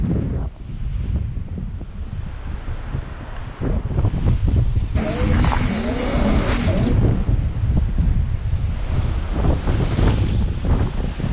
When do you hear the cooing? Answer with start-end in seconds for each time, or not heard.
5.0-7.0.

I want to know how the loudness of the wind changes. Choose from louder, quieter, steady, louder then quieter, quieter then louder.
louder.